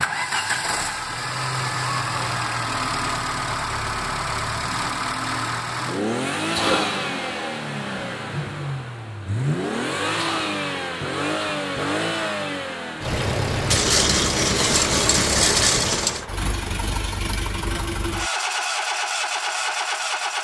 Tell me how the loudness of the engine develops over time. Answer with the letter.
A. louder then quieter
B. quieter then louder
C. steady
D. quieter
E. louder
C.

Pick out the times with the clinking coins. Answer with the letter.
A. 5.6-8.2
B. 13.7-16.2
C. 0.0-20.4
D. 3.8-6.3
B.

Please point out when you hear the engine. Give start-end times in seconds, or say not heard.
0.0-20.4.